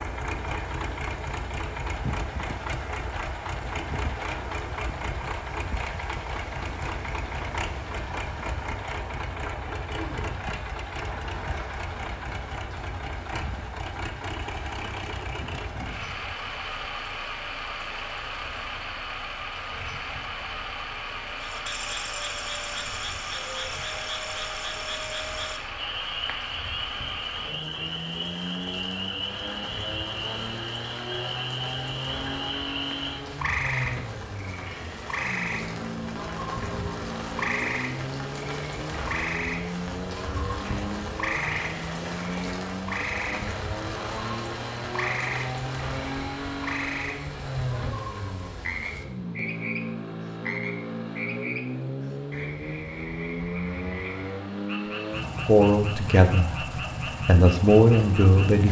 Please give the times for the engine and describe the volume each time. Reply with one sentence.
The engine can be heard from 0.0 to 58.6 s, at a steady volume.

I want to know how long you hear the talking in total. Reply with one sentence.
The talking can be heard for 3 seconds in total.